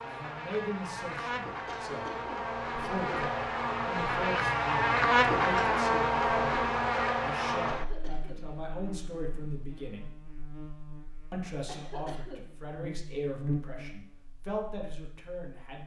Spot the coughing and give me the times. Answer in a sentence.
The coughing can be heard from 1.6 to 3.0 s, from 7.7 to 8.4 s and from 11.7 to 12.4 s.